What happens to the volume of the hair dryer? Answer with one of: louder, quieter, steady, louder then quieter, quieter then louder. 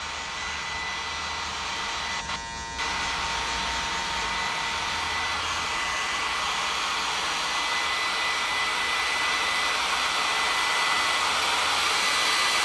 louder.